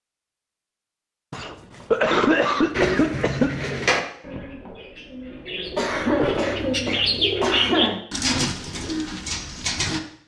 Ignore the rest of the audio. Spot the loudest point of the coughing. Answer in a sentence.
The loudest moment of the coughing is at 2 seconds.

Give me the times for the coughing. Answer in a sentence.
You can hear the coughing from 1.3 to 3.5 s and from 5.8 to 8.0 s.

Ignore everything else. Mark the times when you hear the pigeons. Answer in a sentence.
You can hear the pigeons from 2.7 to 10.0 s.